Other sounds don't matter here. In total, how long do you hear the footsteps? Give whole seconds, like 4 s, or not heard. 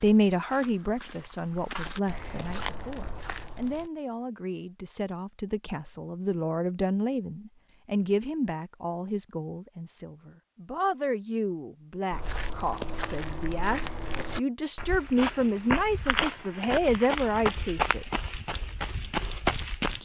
12 s.